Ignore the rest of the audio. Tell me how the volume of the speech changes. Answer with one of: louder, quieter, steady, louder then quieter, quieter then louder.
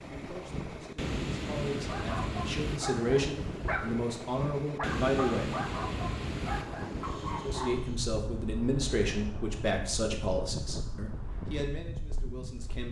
louder then quieter.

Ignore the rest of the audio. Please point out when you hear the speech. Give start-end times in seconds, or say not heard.
0.0-5.5, 7.4-12.8.